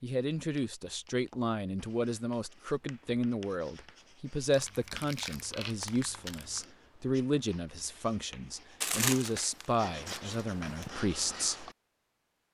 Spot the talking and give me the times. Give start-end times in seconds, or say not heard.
0.0-11.7.